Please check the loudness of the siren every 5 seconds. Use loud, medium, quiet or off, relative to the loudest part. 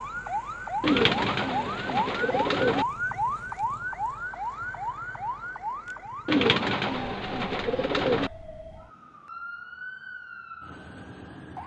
loud, medium, medium.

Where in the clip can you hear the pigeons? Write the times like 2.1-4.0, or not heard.
0.8-2.9, 6.2-8.3.